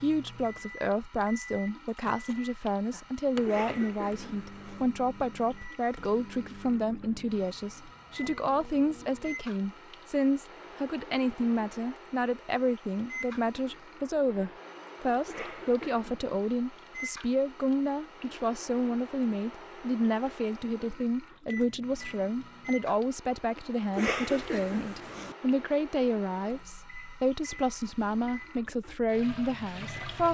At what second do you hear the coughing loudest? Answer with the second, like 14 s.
24 s.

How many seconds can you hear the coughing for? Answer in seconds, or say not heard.
4 s.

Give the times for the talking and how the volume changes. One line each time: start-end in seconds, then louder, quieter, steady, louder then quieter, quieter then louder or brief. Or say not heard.
0.0-30.2 steady.